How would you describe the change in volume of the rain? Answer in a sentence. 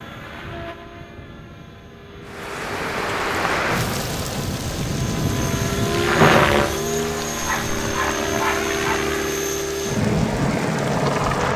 The volume of the rain goes down.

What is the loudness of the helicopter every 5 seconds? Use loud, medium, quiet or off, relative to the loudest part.
quiet, loud, loud.